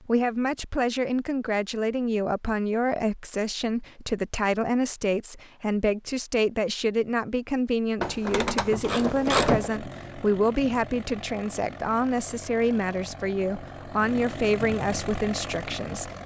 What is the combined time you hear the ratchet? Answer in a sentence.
You can hear the ratchet for 2 seconds altogether.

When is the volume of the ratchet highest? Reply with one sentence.
The loudest moment of the ratchet is at 9 seconds.